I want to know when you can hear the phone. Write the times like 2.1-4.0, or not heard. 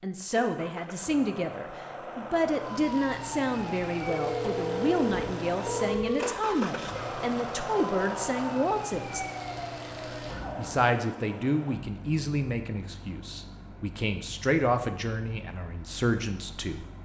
4.0-6.3.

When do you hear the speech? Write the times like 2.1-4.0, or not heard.
0.0-9.2, 10.6-16.9.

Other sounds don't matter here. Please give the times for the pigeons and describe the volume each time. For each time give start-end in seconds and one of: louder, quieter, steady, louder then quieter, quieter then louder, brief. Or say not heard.
not heard.